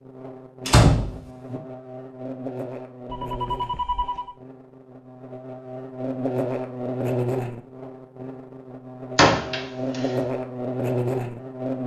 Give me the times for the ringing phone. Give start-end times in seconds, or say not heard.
3.0-4.3.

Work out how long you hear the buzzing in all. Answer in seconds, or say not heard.
12 s.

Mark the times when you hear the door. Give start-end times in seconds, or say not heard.
0.7-1.6, 9.2-10.0.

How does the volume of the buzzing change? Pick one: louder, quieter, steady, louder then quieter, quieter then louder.
louder.